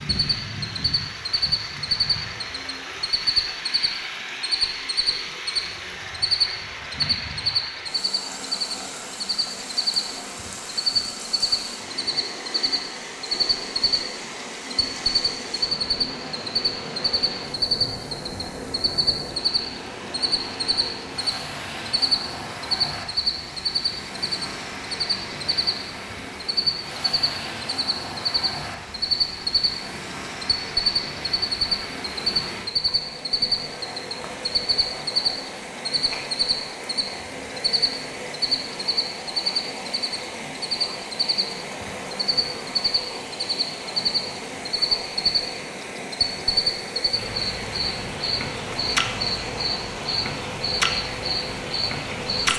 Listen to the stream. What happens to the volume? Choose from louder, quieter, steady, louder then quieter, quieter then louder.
steady.